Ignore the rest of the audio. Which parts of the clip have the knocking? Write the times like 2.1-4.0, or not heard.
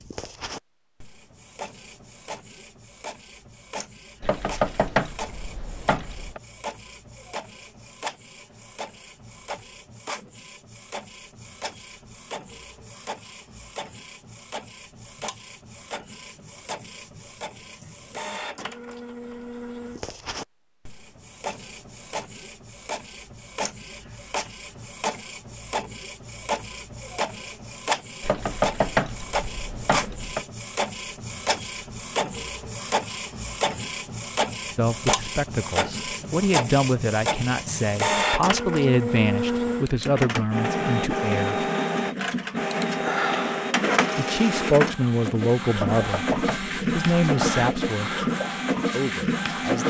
4.2-6.4, 28.2-30.4, 46.0-47.6.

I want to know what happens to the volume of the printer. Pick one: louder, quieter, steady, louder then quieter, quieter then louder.
louder.